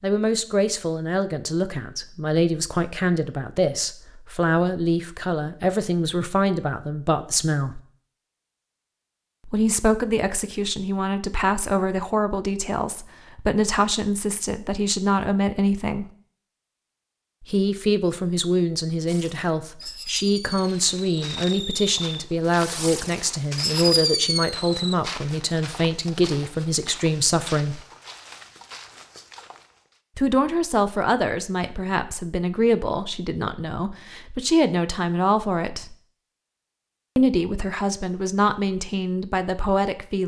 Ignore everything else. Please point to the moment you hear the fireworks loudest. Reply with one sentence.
The loudest moment of the fireworks is at 24 seconds.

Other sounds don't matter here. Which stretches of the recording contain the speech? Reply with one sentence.
You can hear the speech from 0.0 to 7.8 s, from 9.4 to 16.1 s, from 17.4 to 27.8 s, from 30.1 to 36.0 s and from 37.1 to 40.2 s.